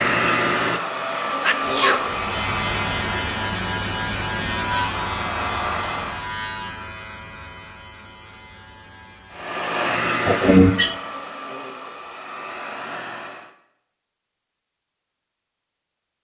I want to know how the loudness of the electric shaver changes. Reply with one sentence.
The volume of the electric shaver goes down.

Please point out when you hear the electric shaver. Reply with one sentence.
The electric shaver can be heard from 1.9 to 9.6 s.